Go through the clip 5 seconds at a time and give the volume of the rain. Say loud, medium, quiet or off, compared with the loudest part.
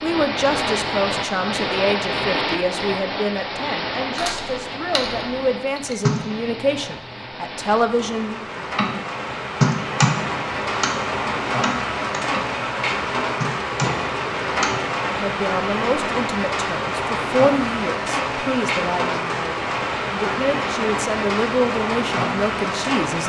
loud, medium, loud, loud, loud.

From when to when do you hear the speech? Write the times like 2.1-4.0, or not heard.
0.0-8.7, 15.1-23.2.